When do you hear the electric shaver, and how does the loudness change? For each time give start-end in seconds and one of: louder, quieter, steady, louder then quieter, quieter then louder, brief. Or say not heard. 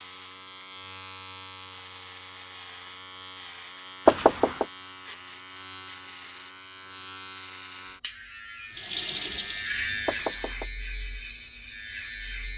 0.0-12.5 louder.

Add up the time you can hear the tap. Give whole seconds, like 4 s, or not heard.
2 s.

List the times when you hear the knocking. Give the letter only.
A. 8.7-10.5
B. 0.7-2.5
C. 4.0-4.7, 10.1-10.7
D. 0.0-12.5
C.